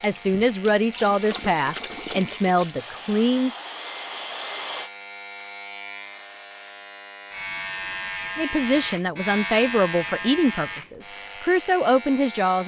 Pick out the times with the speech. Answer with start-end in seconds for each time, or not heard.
0.0-3.5, 8.3-12.6.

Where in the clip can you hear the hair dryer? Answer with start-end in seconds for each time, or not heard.
2.7-4.9.